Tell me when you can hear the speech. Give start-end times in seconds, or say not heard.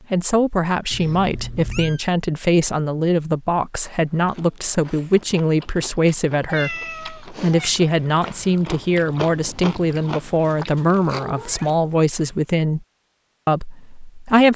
0.1-12.8, 13.4-14.5.